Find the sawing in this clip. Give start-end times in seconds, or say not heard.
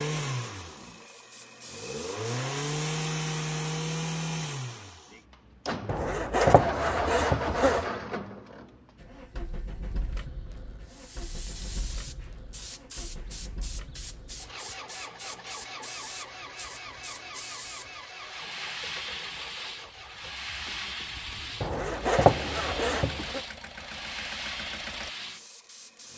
5.8-7.8, 21.6-23.4.